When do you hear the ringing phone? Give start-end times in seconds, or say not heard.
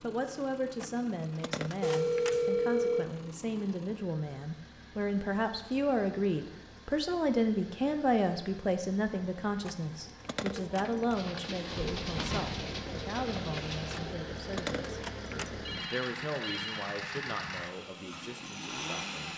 1.8-3.0, 15.7-16.9.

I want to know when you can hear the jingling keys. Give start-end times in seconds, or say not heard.
0.8-2.4, 9.7-11.2, 13.9-15.5.